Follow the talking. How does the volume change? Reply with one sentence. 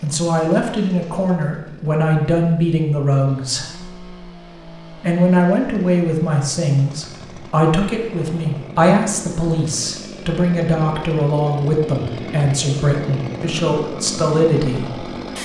The loudness of the talking stays about the same.